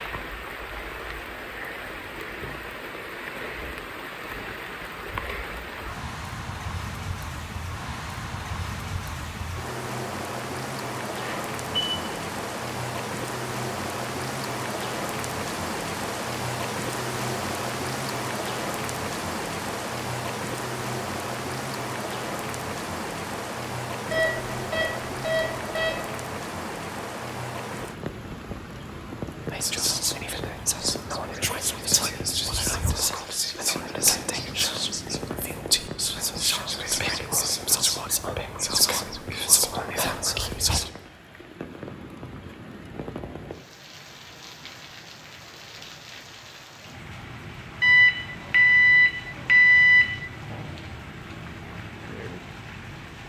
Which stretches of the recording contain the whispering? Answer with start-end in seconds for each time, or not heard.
29.5-40.9.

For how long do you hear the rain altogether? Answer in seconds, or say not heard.
53 s.